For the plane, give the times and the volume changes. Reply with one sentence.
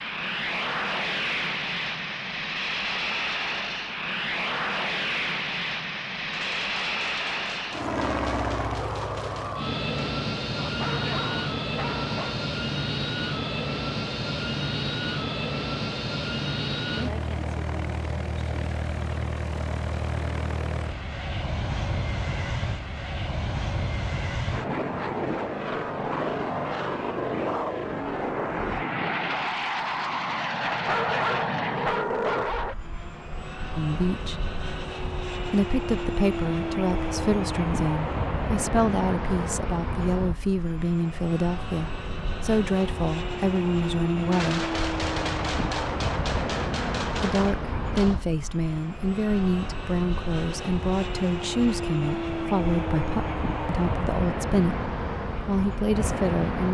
The plane can be heard from 0.0 to 56.7 s, at a steady volume.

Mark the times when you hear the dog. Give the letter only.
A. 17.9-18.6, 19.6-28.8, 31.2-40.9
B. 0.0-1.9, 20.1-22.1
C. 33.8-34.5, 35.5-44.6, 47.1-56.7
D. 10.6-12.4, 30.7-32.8
D.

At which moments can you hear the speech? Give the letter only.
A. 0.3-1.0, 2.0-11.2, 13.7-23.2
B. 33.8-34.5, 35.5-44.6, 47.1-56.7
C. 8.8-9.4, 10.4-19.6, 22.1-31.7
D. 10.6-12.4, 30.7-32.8
B.